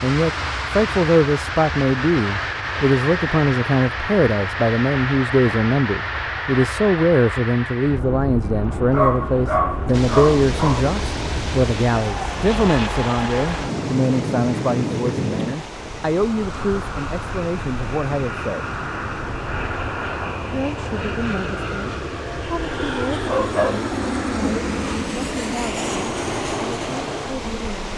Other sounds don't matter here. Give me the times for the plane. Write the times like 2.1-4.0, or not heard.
0.0-27.9.